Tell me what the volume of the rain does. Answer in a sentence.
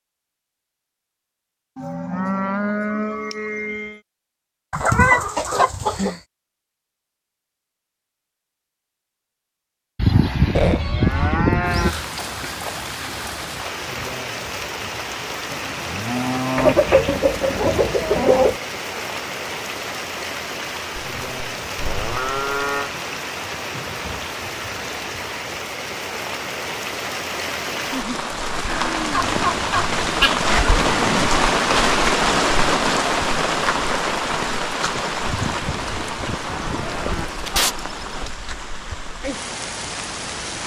The loudness of the rain goes up, then down.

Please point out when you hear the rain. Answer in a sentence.
You can hear the rain from 11.6 to 40.6 s.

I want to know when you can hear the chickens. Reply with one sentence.
You can hear the chickens from 4.7 to 6.2 s, from 10.6 to 12.1 s, from 16.6 to 18.6 s, from 29.1 to 30.5 s and from 36.9 to 37.8 s.